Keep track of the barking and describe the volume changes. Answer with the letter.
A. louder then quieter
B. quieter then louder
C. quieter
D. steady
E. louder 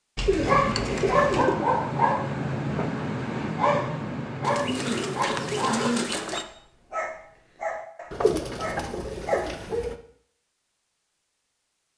C.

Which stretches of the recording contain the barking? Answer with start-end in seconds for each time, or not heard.
0.4-9.9.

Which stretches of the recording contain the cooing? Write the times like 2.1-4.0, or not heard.
0.1-1.7, 4.4-6.5, 8.1-9.9.